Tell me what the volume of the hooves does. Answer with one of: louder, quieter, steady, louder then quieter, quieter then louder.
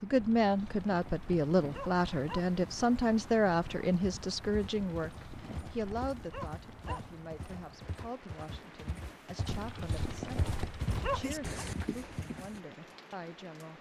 louder.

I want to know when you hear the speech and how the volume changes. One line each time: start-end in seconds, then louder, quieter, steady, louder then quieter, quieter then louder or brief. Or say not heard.
0.0-13.7 quieter.